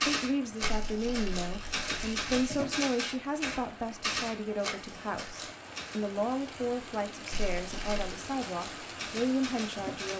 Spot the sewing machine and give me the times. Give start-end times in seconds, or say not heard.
not heard.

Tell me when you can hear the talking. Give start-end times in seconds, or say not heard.
0.0-10.1.